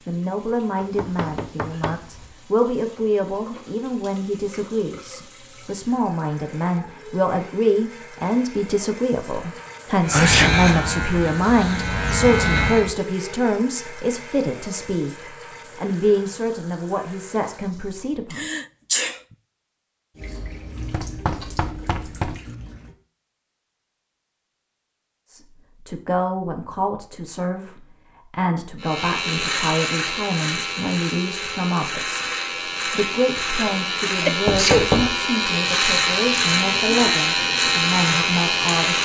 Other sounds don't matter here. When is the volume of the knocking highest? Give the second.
35 s.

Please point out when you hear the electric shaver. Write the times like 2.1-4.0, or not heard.
10.0-12.9, 28.8-39.0.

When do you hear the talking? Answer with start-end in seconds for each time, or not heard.
0.1-18.4, 25.2-32.2, 32.9-39.0.